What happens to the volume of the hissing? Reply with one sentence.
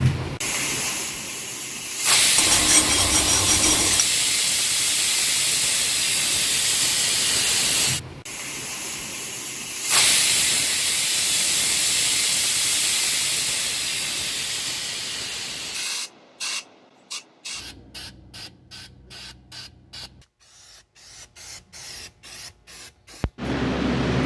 The loudness of the hissing goes down.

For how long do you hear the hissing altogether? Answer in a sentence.
The hissing can be heard for 24 seconds in total.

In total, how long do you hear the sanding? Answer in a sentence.
You can hear the sanding for 2 seconds altogether.